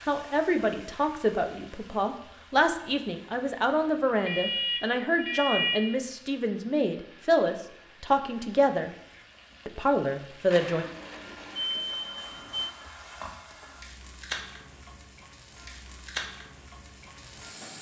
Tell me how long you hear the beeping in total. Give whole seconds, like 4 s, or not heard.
4 s.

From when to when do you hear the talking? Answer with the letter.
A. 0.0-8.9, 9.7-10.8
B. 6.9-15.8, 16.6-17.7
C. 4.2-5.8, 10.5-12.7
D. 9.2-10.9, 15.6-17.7
A.